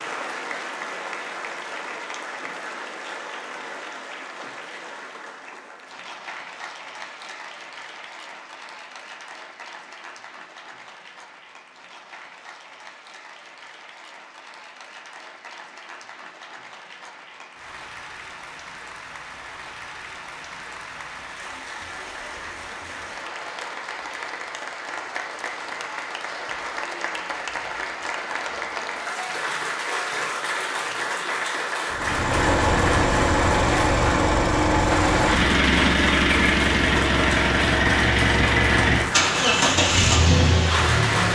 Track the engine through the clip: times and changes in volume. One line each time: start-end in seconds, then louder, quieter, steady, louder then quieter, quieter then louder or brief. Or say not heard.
31.9-41.3 steady.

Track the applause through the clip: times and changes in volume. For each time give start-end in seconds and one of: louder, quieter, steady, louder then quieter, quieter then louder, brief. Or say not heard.
0.0-41.3 quieter then louder.